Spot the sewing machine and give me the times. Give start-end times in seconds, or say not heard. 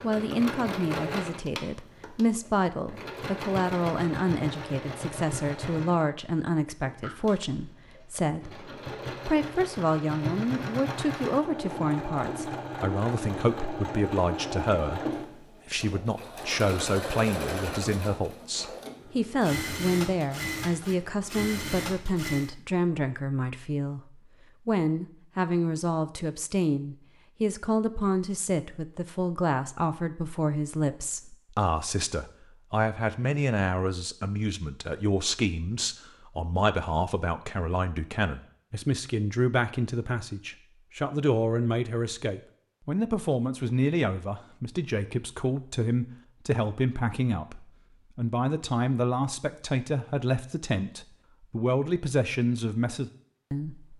0.0-22.5.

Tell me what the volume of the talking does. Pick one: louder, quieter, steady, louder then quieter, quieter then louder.
steady.